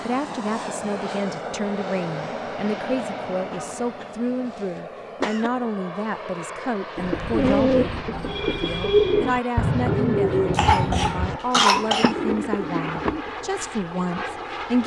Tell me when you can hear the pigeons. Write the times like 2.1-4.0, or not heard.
7.0-13.3.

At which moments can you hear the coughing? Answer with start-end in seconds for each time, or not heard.
3.5-5.5, 10.5-12.2.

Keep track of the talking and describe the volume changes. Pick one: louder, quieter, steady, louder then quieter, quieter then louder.
steady.